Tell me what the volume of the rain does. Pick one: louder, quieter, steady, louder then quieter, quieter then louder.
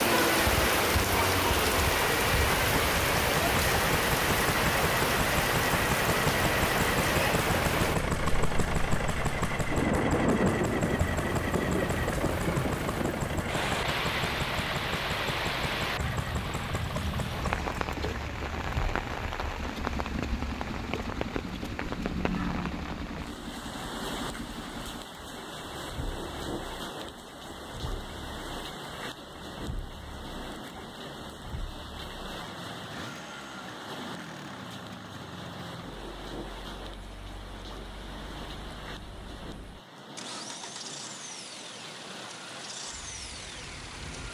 quieter.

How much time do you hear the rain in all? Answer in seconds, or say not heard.
44 s.